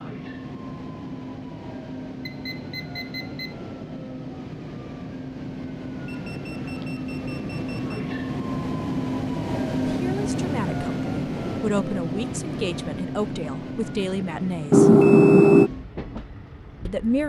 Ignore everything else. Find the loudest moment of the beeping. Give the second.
15 s.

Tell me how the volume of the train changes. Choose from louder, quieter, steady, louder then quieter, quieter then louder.
louder then quieter.